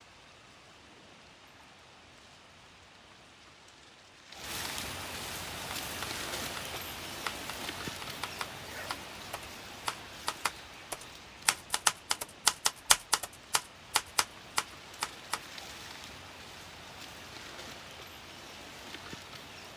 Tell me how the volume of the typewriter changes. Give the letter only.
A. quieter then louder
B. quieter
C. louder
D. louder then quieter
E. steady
D.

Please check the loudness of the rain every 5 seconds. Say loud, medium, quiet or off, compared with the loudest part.
medium, loud, medium, medium.